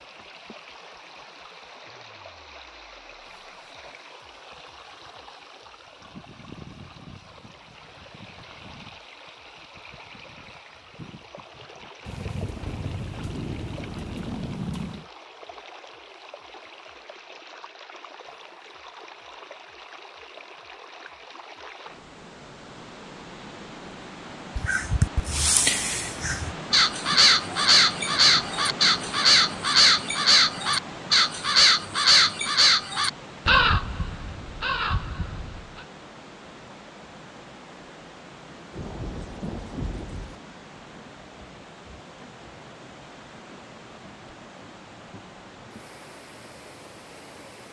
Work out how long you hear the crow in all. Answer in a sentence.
The crow can be heard for 11 seconds in total.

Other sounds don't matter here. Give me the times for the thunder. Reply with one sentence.
The thunder can be heard from 12.1 to 15.1 s and from 38.7 to 40.4 s.